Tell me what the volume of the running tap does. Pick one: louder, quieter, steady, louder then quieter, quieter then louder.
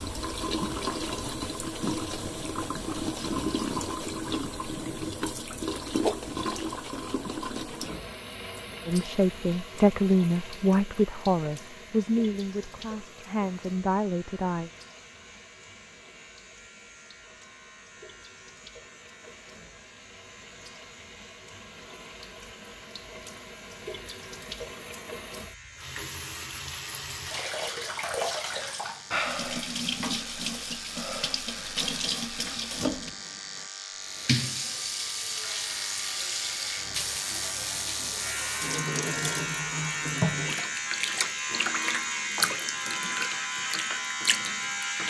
quieter then louder.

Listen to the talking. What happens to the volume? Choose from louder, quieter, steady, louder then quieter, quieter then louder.
quieter then louder.